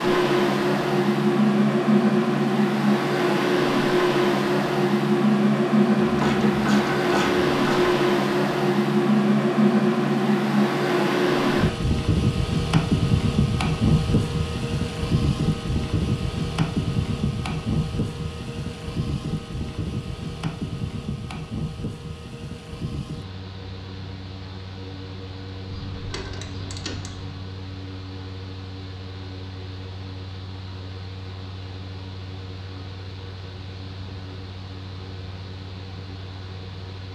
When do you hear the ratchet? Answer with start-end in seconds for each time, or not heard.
6.0-8.0, 25.6-27.4.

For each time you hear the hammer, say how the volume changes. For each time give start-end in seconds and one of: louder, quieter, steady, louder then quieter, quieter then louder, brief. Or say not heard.
not heard.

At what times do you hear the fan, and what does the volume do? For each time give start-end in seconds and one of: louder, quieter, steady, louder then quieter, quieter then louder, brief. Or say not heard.
0.0-37.1 quieter.